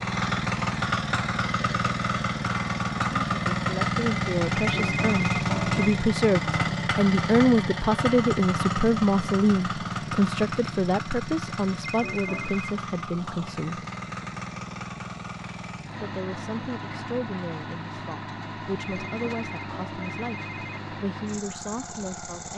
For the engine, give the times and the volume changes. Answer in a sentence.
You can hear the engine from 0.0 to 22.5 s, getting quieter.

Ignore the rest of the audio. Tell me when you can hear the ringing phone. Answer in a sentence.
The ringing phone can be heard from 4.5 to 6.0 s, from 11.8 to 12.7 s and from 18.9 to 20.8 s.